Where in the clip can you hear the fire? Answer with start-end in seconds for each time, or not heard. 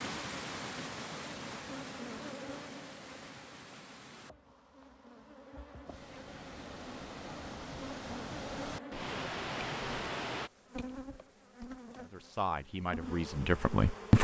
not heard.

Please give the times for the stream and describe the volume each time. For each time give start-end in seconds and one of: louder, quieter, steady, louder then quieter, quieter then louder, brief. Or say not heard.
0.0-10.5 quieter then louder.